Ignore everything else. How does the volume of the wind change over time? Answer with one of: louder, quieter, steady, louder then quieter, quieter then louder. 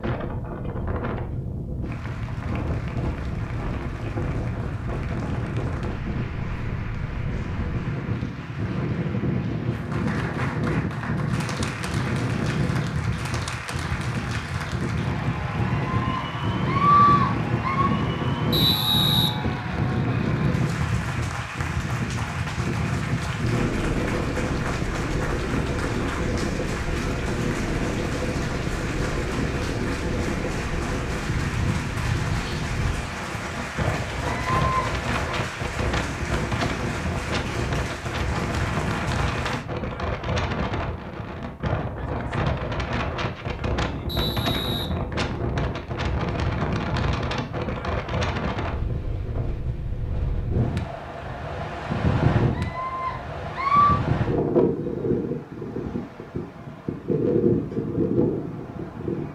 steady.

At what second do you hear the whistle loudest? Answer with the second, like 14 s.
19 s.